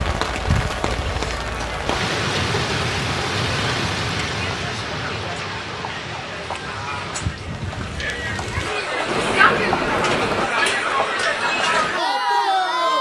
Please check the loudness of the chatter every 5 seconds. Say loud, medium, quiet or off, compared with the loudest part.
medium, medium, loud.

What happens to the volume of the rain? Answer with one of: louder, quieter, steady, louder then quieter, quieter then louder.
quieter then louder.